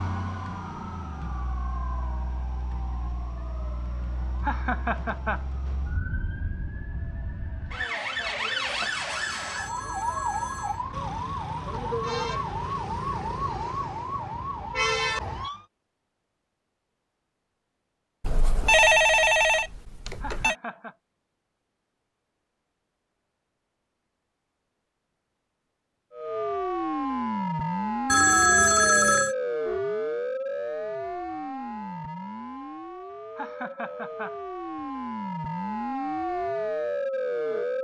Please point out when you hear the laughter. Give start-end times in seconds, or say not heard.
4.4-5.5, 20.2-20.9, 33.4-34.9.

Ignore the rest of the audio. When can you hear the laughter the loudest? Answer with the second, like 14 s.
5 s.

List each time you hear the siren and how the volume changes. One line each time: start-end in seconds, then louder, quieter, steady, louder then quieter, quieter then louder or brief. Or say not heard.
0.0-15.7 louder
26.1-37.7 quieter then louder.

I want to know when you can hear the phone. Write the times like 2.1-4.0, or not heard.
9.1-10.8, 18.2-20.6, 28.1-29.4.